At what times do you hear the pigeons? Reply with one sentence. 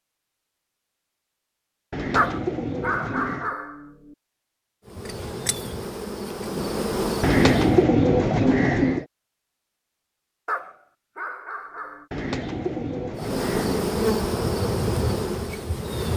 You can hear the pigeons from 1.9 to 3.5 s, from 7.2 to 9.1 s and from 12.1 to 13.8 s.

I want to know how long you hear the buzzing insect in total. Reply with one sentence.
You can hear the buzzing insect for 6 seconds altogether.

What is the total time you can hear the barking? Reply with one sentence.
The barking can be heard for 3 seconds in total.